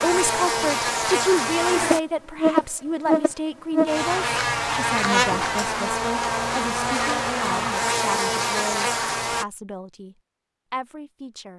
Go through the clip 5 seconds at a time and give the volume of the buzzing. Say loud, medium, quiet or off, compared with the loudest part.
loud, loud, off.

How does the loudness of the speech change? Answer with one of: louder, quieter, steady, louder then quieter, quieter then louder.
quieter.